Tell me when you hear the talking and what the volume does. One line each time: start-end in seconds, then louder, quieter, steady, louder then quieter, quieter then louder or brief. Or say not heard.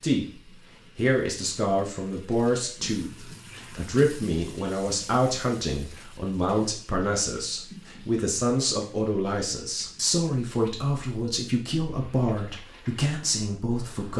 0.0-14.1 steady.